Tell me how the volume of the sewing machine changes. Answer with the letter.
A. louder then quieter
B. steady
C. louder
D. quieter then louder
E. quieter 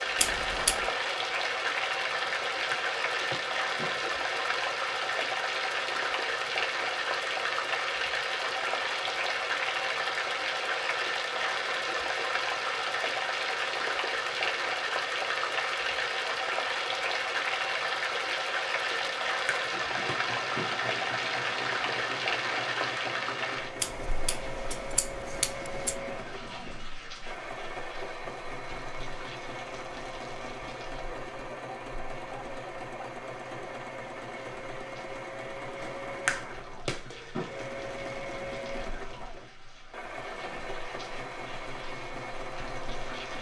B.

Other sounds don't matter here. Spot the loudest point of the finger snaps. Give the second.
36 s.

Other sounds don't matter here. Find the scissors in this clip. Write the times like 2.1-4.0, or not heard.
0.1-0.9, 23.8-25.9.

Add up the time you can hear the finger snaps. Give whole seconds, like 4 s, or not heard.
5 s.